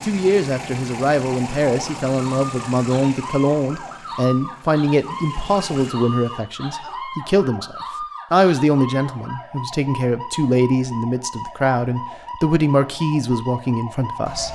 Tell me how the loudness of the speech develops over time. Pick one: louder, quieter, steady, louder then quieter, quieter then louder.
steady.